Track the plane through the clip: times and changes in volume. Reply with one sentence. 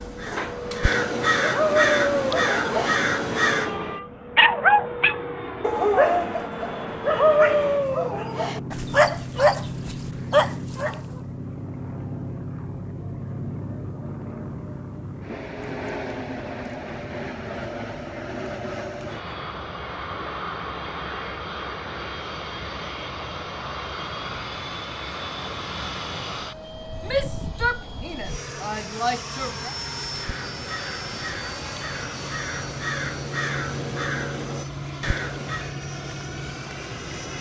The plane can be heard from 0.0 to 37.3 s, at a steady volume.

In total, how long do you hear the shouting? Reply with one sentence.
The shouting can be heard for 3 seconds in total.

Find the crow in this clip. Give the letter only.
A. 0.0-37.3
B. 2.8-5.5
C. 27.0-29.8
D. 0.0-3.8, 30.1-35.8
D.